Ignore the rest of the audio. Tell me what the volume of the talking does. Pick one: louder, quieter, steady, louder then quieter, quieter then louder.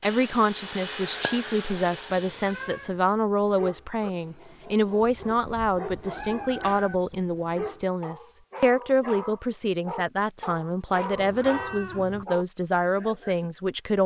steady.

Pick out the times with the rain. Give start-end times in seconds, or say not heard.
not heard.